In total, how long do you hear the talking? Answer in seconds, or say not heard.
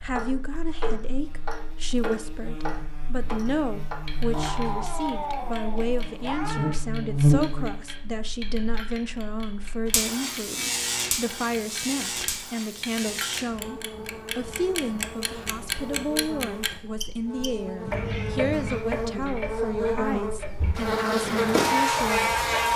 22 s.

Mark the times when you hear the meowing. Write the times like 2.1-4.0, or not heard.
4.3-6.8, 17.9-18.8.